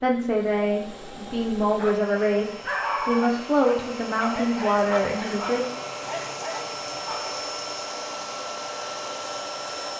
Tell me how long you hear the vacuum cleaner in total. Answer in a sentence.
The vacuum cleaner can be heard for 10 seconds in total.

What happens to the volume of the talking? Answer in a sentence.
The loudness of the talking stays about the same.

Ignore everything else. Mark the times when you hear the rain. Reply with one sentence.
You can't hear the rain here.